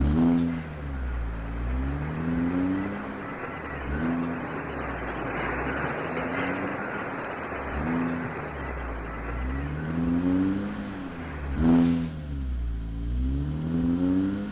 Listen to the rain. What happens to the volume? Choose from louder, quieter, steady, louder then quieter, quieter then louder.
louder then quieter.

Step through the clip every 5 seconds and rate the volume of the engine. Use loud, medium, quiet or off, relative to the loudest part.
loud, medium, loud.